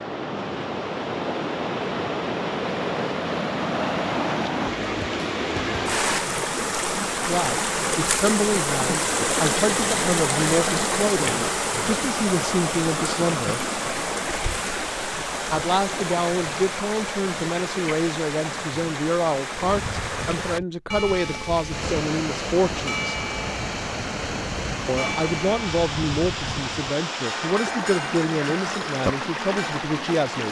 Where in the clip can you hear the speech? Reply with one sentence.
You can hear the speech from 7.2 to 13.6 s, from 15.5 to 23.1 s and from 24.9 to 30.4 s.